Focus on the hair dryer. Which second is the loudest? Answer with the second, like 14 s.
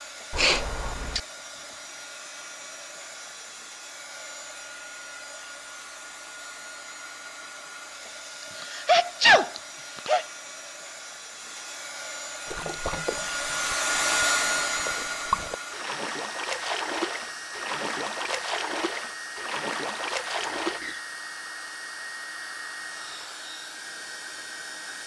14 s.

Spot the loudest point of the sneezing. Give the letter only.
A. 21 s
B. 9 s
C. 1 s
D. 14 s
B.